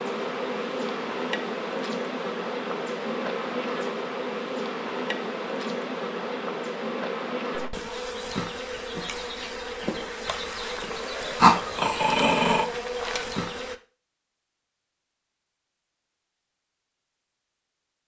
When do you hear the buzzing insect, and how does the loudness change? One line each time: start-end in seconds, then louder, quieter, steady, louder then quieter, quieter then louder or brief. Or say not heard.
0.0-13.8 steady.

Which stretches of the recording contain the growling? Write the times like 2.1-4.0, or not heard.
11.4-12.7.